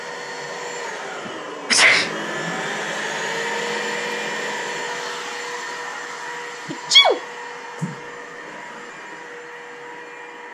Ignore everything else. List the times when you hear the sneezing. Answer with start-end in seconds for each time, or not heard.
1.2-2.1, 6.7-7.2.